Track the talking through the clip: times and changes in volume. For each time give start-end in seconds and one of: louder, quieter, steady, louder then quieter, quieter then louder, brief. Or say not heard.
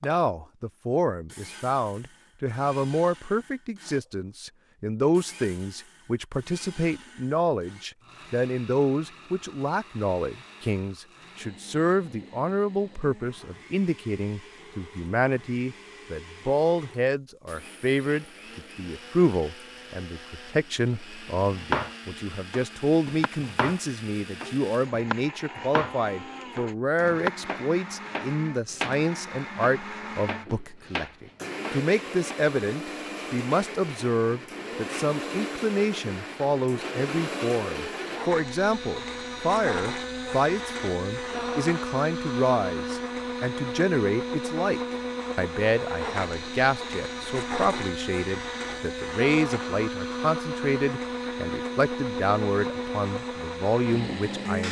0.0-54.6 steady.